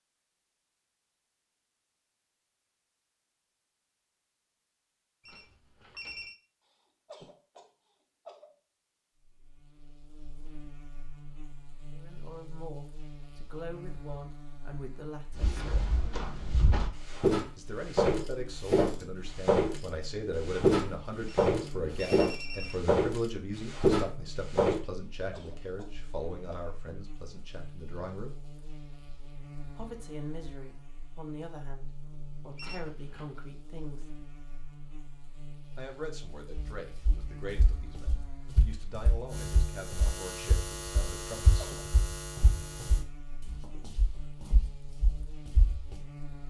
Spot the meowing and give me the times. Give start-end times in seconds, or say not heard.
not heard.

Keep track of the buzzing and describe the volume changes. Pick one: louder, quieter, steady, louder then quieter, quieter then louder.
louder.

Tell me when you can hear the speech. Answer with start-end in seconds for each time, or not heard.
11.9-15.9, 17.6-28.4, 29.8-34.1, 35.8-41.6.